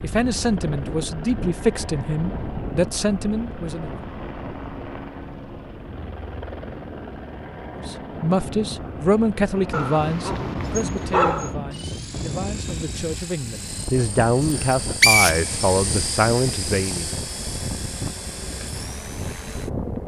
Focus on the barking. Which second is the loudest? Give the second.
11 s.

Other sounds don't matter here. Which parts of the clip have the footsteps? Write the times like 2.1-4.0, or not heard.
not heard.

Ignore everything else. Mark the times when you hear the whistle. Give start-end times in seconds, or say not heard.
14.5-15.4.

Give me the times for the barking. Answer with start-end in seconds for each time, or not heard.
9.7-11.6.